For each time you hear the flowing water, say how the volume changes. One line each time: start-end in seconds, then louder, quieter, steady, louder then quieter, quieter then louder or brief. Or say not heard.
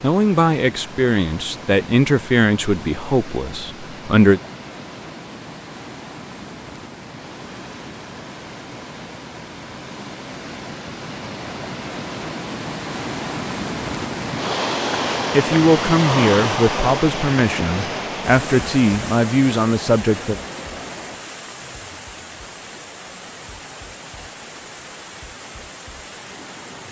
0.0-26.8 louder then quieter.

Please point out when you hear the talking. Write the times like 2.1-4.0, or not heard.
0.0-4.4, 15.3-20.4.